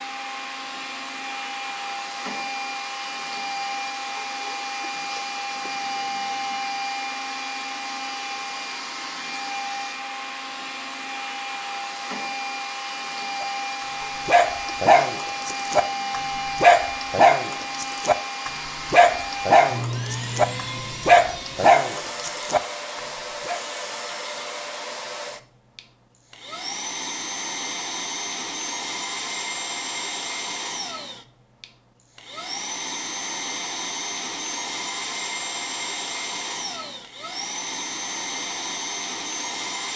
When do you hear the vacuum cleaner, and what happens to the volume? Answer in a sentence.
You can hear the vacuum cleaner from 0.0 to 39.9 s, at a steady volume.